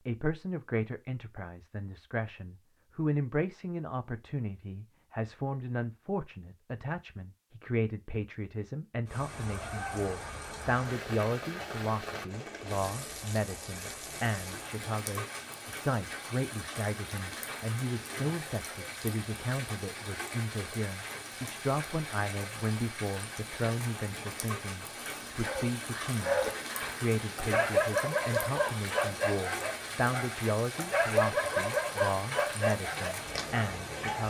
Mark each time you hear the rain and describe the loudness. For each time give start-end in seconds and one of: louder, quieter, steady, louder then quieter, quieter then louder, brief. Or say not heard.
9.1-34.2 steady.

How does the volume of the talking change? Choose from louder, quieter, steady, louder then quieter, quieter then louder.
steady.